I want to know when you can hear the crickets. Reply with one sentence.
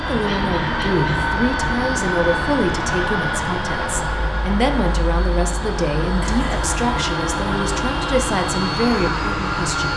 The crickets can't be heard in this clip.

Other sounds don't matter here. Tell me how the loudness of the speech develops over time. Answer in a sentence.
The loudness of the speech stays about the same.